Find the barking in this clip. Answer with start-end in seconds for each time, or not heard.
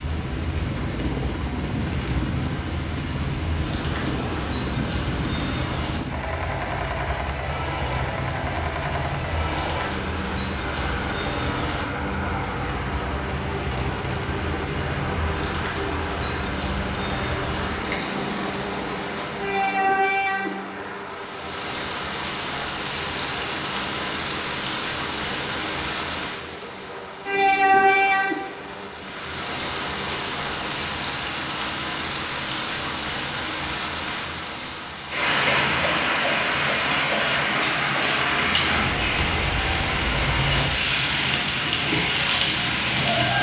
not heard.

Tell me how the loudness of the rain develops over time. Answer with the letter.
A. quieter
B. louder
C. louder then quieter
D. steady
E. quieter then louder
B.